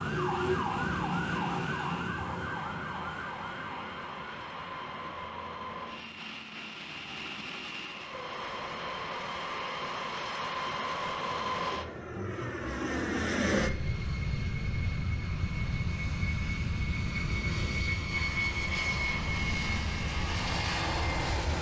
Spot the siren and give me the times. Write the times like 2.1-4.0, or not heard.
0.0-7.3.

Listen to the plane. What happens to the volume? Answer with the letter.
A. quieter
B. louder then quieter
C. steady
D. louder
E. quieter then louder
D.